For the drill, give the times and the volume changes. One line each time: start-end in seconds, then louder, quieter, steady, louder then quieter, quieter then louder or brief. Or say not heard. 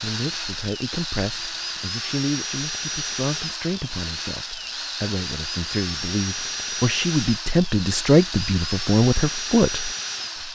0.0-10.5 steady.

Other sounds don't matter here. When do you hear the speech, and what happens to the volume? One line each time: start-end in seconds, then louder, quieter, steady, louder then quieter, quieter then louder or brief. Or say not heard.
0.0-10.5 louder.